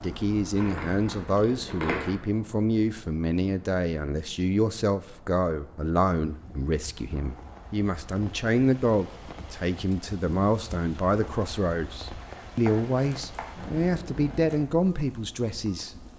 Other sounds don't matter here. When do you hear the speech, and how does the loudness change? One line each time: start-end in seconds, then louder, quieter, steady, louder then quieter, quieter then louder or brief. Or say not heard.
0.0-16.1 steady.